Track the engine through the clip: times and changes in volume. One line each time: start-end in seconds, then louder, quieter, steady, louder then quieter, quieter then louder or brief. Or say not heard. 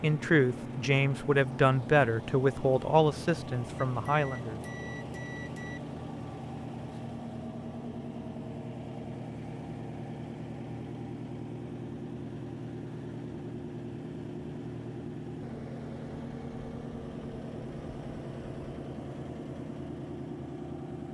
0.0-21.1 steady.